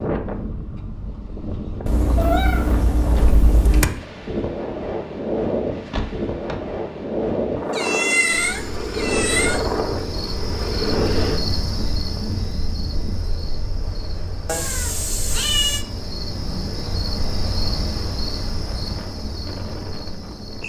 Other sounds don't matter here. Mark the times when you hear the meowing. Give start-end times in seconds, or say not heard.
1.9-3.9, 7.7-9.7, 14.4-15.8.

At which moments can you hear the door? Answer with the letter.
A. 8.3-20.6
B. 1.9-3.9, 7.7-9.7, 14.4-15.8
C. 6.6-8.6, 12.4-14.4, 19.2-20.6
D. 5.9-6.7
D.